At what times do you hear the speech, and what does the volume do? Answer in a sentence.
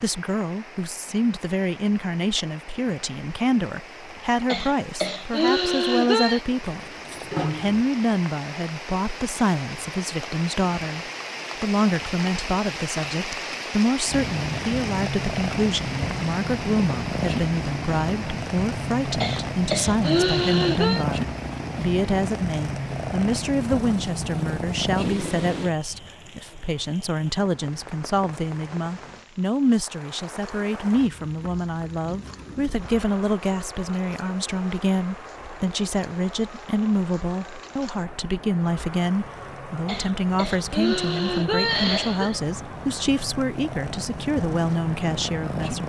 You can hear the speech from 0.0 to 45.8 s, at a steady volume.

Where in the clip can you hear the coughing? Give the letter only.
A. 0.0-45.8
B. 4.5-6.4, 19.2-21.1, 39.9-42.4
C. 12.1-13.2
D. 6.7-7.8
B.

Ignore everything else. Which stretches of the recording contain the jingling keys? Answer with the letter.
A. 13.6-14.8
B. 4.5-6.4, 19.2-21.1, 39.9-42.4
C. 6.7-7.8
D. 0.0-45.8
C.